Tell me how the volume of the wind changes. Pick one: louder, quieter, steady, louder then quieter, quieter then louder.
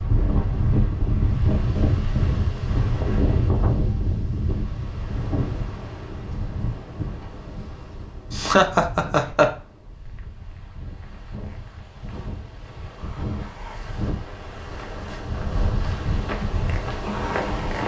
quieter then louder.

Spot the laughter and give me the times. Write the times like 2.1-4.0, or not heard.
8.3-9.5.